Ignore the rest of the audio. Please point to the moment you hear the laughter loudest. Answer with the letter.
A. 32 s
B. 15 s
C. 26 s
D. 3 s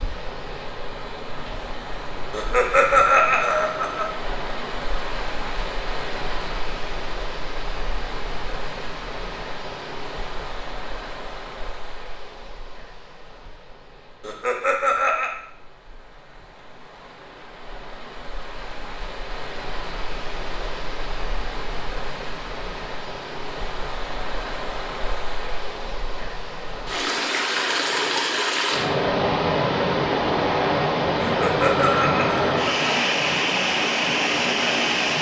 D.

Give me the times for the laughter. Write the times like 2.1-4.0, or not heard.
2.3-4.0, 14.2-15.3, 31.2-32.8.